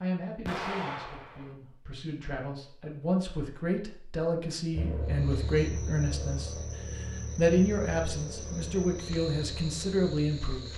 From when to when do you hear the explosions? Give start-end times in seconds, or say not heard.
0.5-1.6.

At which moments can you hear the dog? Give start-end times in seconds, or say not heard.
not heard.